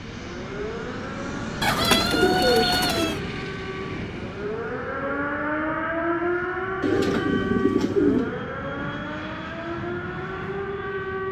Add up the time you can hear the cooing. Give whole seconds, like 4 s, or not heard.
3 s.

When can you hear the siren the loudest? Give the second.
6 s.